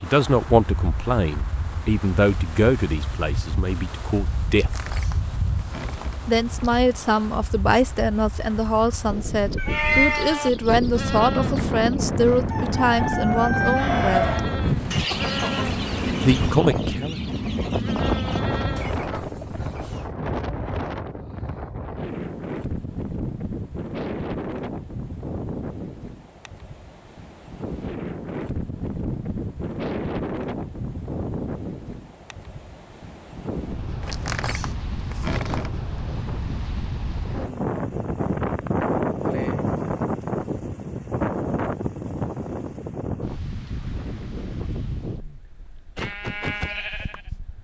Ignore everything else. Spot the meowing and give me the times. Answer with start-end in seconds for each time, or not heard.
9.6-10.2.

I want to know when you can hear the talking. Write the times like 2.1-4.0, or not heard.
0.0-4.9, 6.2-14.4, 16.2-17.2.